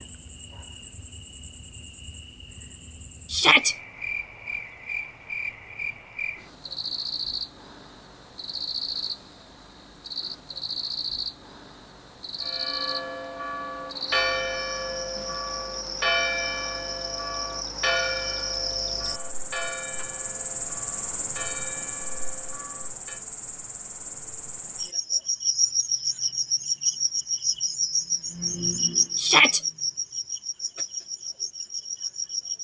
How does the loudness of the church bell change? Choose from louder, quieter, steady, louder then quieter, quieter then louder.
quieter.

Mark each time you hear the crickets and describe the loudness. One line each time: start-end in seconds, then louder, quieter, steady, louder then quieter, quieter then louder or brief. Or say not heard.
0.0-32.5 louder.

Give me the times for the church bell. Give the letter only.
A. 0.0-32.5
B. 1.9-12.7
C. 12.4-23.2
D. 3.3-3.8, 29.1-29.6
C.